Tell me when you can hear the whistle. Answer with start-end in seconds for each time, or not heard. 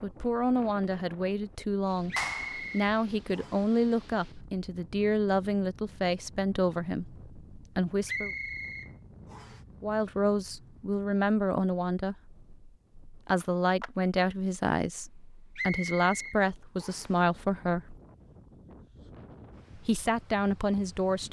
2.1-3.6, 8.1-9.6, 15.6-17.1.